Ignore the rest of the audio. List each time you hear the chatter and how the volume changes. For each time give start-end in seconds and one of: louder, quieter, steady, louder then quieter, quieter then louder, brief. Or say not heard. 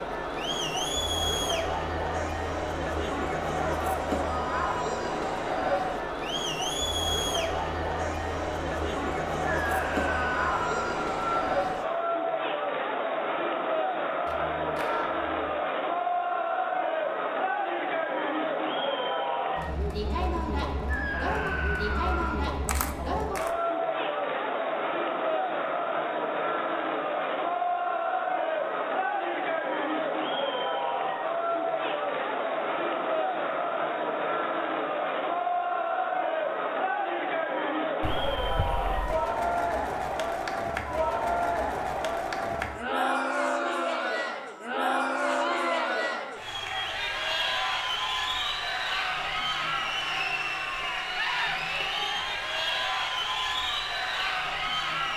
0.0-55.1 steady.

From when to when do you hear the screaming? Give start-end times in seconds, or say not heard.
9.4-11.5, 20.9-22.5, 45.2-45.9.